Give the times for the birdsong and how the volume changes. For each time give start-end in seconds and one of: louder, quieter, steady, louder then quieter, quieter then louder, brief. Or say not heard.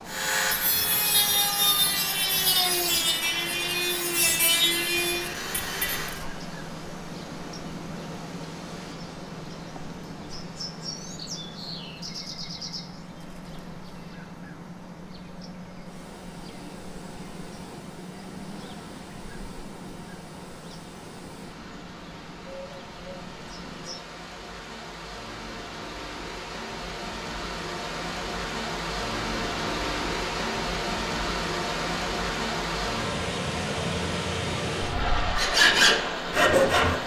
0.0-24.0 quieter.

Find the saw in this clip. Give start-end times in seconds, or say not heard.
0.1-6.2, 35.4-37.0.